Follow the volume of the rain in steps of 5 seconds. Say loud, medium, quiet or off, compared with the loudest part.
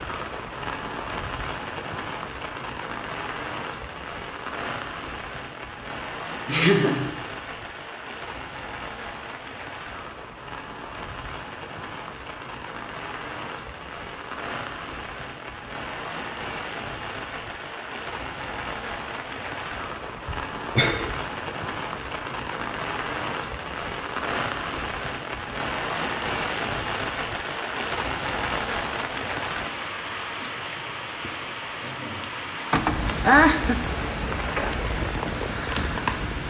medium, medium, medium, medium, loud, loud, loud, loud.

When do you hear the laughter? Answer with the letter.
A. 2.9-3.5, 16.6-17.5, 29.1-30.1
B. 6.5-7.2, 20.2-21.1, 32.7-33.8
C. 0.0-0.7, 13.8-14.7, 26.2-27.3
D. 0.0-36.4
B.